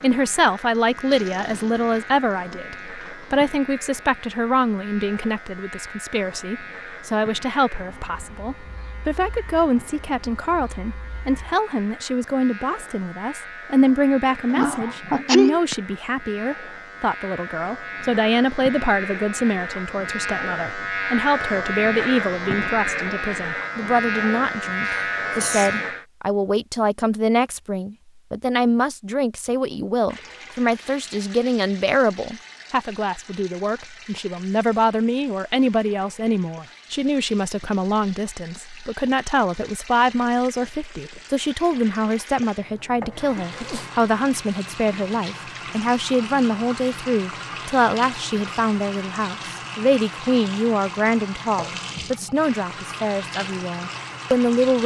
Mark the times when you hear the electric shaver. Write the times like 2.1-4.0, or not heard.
0.0-26.1.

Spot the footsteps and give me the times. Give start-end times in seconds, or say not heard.
not heard.